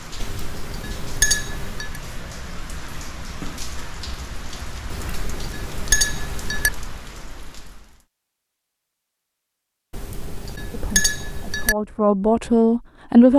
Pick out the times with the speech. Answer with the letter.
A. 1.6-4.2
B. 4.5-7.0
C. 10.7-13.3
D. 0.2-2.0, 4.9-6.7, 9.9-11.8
C.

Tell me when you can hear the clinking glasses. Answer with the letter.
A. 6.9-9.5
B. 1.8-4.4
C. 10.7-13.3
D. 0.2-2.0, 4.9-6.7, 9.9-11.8
D.